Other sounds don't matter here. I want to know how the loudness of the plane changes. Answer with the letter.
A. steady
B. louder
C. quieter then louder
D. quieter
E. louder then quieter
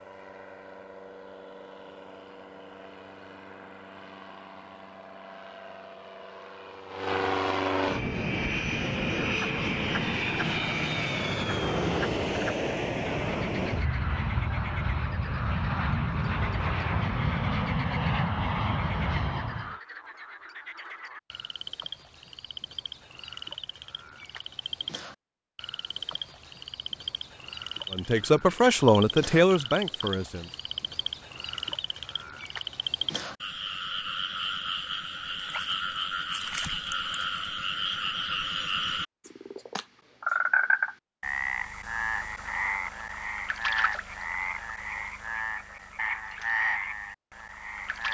B.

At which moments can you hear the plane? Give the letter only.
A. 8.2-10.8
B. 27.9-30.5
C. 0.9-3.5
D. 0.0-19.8
D.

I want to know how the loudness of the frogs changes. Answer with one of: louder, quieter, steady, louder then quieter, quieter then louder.
louder.